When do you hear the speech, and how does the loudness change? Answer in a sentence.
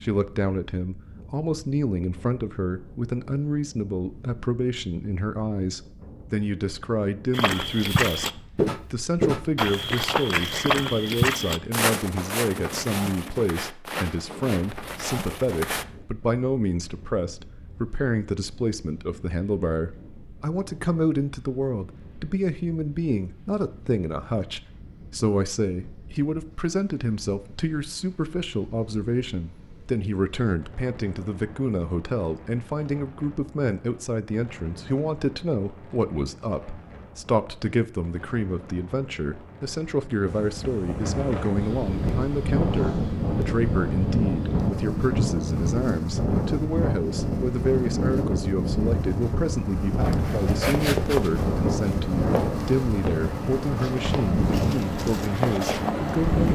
You can hear the speech from 0.0 to 8.2 s, at a steady volume; and from 8.9 to 56.5 s, at a steady volume.